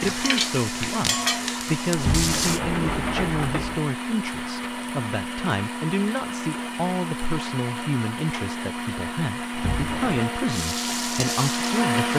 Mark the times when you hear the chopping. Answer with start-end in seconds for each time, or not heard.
not heard.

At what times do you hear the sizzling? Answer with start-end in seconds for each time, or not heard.
0.0-2.6, 10.5-12.1.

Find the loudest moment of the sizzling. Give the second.
1 s.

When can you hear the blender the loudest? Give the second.
12 s.